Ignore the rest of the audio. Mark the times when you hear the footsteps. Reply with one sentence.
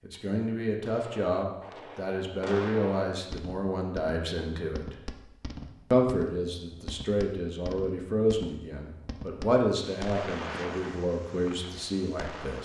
You can't hear the footsteps here.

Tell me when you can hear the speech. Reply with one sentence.
The speech can be heard from 0.0 to 5.0 s and from 5.9 to 12.5 s.